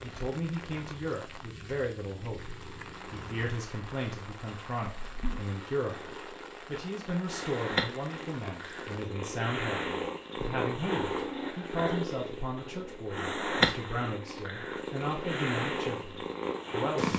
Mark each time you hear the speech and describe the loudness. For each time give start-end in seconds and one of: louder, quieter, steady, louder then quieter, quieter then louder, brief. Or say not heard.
0.0-17.1 steady.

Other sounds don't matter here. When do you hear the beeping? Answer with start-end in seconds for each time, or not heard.
not heard.